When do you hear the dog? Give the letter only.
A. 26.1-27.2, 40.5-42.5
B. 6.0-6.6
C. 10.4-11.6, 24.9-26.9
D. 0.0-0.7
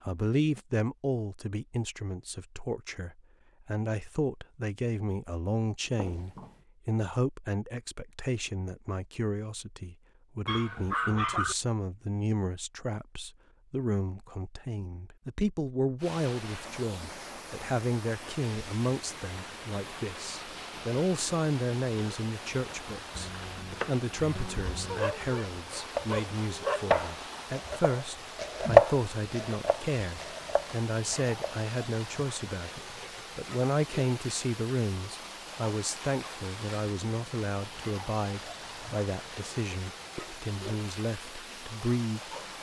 C.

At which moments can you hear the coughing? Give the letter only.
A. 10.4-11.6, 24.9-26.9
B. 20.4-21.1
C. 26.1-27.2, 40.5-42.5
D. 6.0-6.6
D.